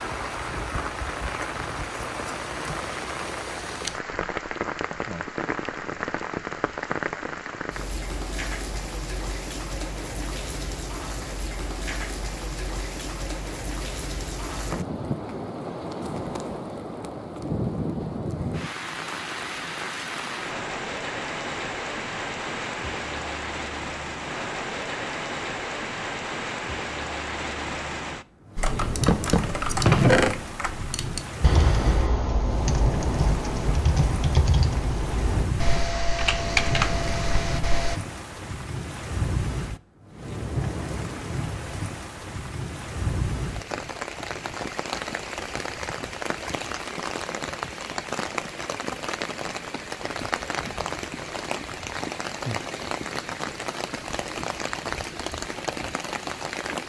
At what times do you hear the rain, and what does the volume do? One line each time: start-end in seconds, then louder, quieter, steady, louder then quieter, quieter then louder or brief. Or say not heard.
0.0-56.8 steady.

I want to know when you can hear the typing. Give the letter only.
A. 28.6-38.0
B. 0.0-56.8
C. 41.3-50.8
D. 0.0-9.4
A.